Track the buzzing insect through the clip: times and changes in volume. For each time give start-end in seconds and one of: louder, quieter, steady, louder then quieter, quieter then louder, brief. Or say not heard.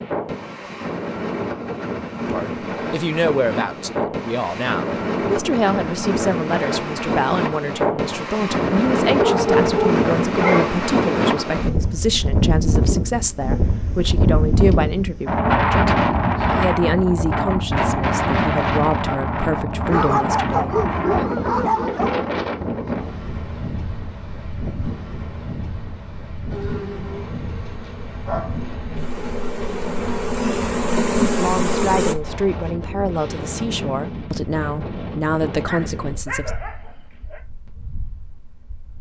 26.5-32.1 louder.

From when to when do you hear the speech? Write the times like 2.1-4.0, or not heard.
2.2-20.8, 31.4-36.5.